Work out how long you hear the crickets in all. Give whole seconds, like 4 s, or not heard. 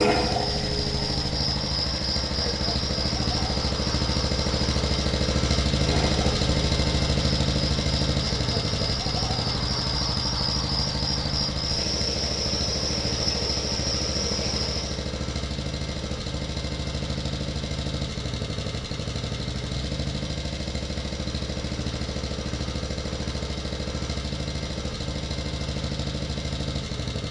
15 s.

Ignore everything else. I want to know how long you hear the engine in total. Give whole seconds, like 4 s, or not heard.
27 s.